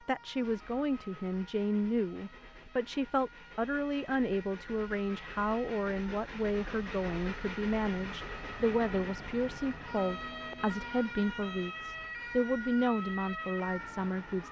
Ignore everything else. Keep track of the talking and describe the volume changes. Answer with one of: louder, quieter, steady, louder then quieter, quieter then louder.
steady.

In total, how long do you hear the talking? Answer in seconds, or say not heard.
14 s.